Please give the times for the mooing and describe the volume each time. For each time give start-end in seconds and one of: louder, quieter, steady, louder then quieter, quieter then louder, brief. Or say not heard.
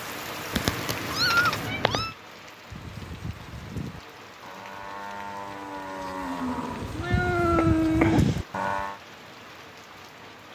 2.7-9.0 louder.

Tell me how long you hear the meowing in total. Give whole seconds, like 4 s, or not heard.
3 s.